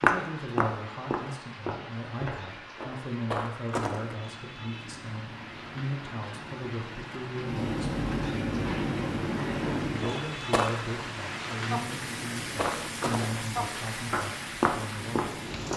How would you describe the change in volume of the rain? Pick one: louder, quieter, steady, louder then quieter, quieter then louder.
louder.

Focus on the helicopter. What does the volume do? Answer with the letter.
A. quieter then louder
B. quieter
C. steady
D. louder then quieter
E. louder
D.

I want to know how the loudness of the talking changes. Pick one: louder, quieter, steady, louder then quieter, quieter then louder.
steady.